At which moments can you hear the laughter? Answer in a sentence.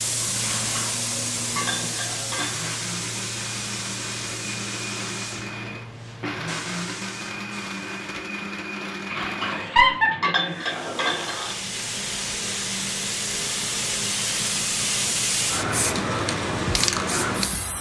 You can hear the laughter from 9.4 to 10.1 s.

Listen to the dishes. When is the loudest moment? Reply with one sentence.
The loudest moment of the dishes is at 10 seconds.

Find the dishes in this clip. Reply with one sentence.
You can hear the dishes from 0.4 to 2.6 s and from 9.1 to 11.4 s.